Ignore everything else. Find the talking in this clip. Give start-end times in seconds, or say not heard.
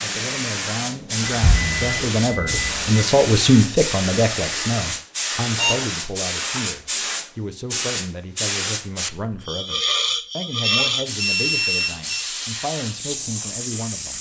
0.0-14.1.